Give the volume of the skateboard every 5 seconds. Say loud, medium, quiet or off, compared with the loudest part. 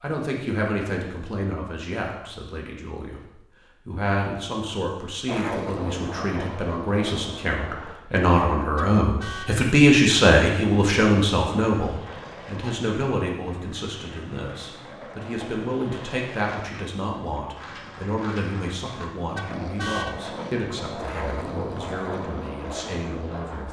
off, loud, medium, medium, loud.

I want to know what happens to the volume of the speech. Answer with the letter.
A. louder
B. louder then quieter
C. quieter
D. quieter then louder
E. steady
B.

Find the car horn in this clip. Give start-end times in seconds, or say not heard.
8.6-9.6, 19.1-20.2.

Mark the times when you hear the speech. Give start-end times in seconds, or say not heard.
0.0-3.2, 3.9-23.6.